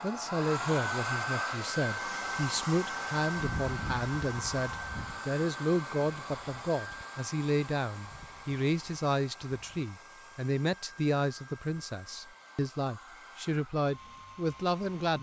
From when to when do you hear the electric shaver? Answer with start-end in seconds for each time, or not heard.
not heard.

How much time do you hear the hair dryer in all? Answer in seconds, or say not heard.
15 s.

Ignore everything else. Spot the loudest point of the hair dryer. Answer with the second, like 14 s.
1 s.